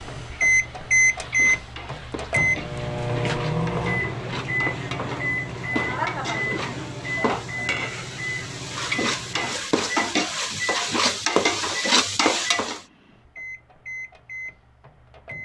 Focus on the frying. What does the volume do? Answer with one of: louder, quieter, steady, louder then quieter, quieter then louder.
louder.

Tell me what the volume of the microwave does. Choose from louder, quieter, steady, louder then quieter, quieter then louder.
quieter.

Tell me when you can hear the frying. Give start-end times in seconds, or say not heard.
0.0-12.8.